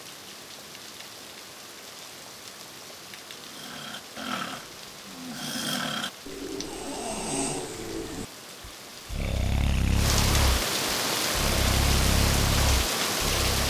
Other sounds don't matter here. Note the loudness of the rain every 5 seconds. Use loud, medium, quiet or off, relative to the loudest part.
quiet, quiet, loud.